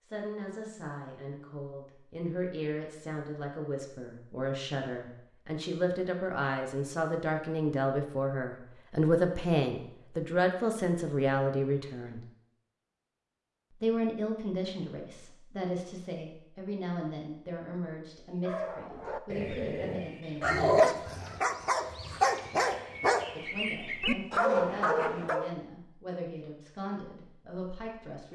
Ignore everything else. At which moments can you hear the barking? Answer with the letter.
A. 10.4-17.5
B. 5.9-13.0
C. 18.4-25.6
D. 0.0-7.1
C.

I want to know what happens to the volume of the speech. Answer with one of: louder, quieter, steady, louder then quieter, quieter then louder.
louder then quieter.